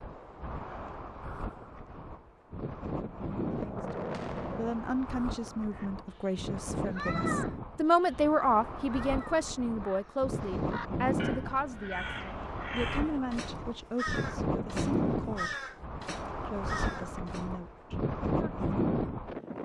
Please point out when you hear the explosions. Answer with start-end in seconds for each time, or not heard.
3.5-4.8.